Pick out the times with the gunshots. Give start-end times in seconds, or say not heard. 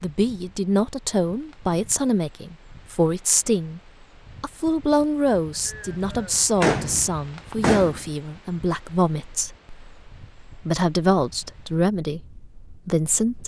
5.7-8.1.